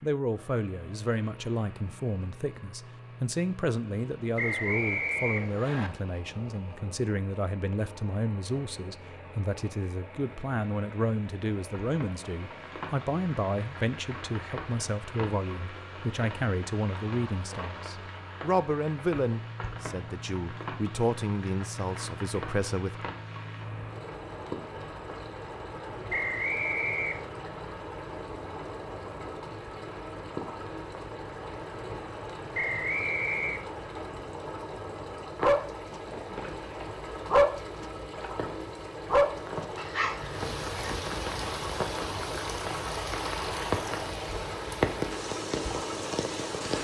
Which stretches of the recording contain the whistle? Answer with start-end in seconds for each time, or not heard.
4.3-5.9, 26.1-27.3, 32.5-33.6.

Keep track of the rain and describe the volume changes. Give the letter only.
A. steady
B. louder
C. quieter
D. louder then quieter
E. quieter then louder
B.